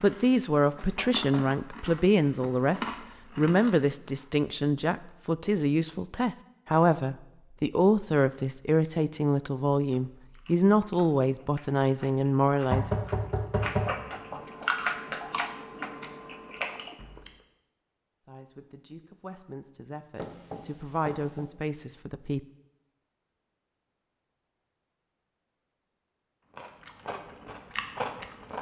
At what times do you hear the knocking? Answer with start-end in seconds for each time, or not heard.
0.6-2.0, 12.7-14.3, 20.1-21.5.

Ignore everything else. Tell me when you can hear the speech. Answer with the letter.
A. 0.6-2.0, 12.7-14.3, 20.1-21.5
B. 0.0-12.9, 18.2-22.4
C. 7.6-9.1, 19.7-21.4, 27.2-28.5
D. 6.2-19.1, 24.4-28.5
B.